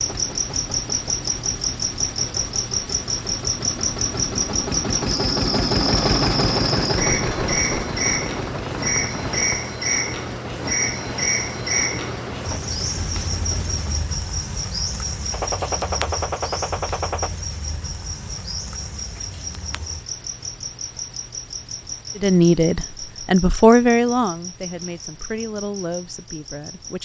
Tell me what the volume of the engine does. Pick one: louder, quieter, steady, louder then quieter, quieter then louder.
louder then quieter.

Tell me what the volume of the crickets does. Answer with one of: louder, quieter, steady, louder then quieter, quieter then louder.
quieter.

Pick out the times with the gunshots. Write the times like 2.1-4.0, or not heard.
5.8-9.7, 15.3-17.3.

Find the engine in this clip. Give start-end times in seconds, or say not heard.
0.0-14.0.